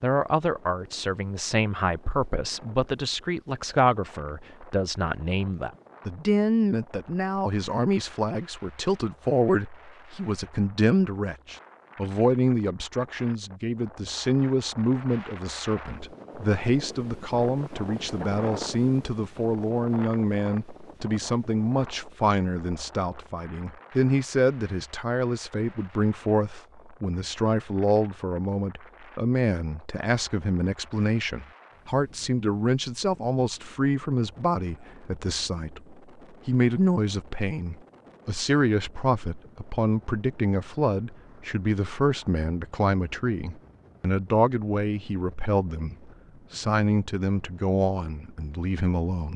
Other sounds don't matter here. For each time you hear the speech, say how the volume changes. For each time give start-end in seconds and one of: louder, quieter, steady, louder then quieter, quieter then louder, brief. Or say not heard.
0.0-49.3 steady.